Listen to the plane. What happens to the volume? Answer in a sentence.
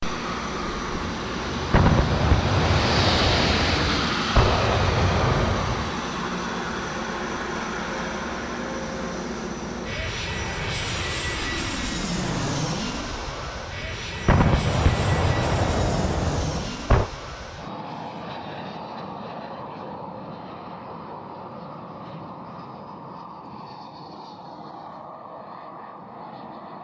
The volume of the plane goes down.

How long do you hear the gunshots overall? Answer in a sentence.
The gunshots can be heard for 7 seconds in total.